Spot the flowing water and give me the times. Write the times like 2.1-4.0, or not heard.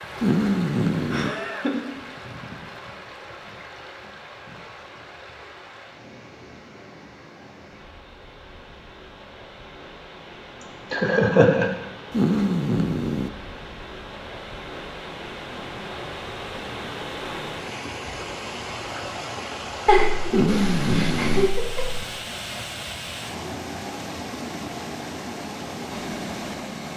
0.0-26.9.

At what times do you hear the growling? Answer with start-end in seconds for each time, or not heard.
0.2-1.4, 12.1-13.3, 20.3-21.5.